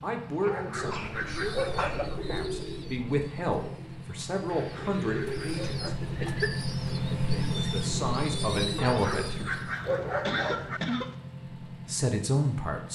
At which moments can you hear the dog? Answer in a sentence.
You can hear the dog from 0.5 to 2.0 s, from 4.5 to 6.0 s and from 8.8 to 10.8 s.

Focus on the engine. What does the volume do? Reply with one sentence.
The volume of the engine goes up, then down.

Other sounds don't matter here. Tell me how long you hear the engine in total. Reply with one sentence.
The engine can be heard for 13 seconds in total.